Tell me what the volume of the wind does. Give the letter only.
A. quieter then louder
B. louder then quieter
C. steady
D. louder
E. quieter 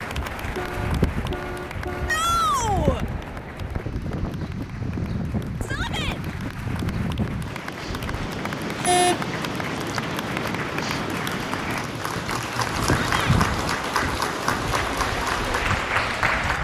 C.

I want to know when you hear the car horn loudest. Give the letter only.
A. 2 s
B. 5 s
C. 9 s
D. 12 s
C.